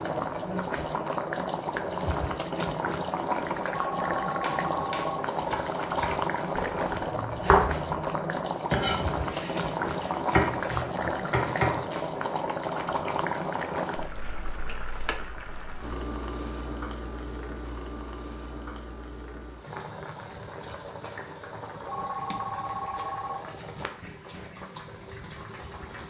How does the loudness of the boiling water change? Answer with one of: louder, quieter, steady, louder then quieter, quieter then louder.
quieter.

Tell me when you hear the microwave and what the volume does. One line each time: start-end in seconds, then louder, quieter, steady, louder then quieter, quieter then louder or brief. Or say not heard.
not heard.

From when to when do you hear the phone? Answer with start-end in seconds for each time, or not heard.
3.7-5.2, 21.9-23.4.